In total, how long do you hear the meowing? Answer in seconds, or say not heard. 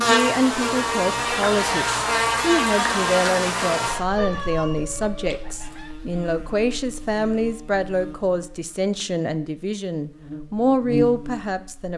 2 s.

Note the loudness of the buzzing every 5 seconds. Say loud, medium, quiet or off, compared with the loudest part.
loud, quiet, medium.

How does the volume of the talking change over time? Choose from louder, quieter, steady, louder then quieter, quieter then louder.
steady.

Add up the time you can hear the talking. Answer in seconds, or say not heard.
12 s.